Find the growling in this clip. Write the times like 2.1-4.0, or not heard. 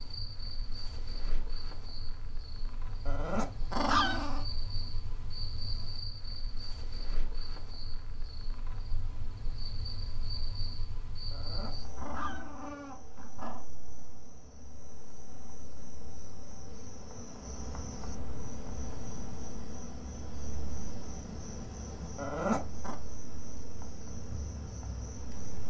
3.0-4.5, 11.3-13.7, 22.1-22.9.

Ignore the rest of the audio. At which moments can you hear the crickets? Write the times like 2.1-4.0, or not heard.
0.0-25.6.